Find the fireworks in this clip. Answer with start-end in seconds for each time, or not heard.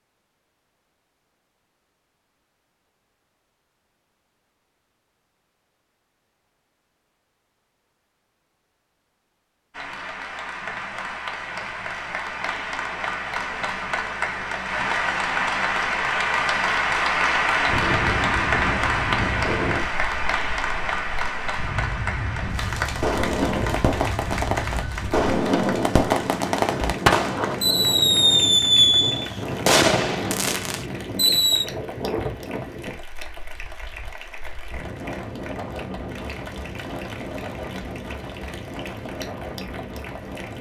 23.0-31.6.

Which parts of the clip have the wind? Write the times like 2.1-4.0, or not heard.
17.6-40.5.